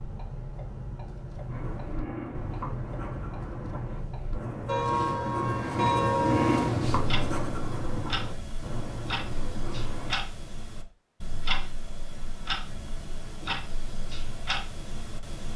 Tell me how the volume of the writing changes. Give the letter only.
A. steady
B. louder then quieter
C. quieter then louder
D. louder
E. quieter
B.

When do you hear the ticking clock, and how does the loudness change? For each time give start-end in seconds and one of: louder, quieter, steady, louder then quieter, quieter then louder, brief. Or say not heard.
0.0-15.5 louder then quieter.